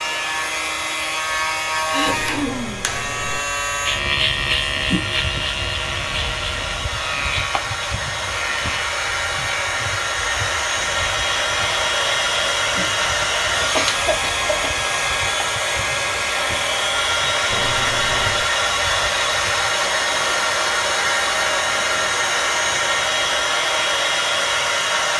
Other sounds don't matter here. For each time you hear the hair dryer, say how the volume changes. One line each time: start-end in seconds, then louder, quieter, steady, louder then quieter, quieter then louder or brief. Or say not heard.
0.0-25.1 louder.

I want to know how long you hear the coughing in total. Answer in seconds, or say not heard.
2 s.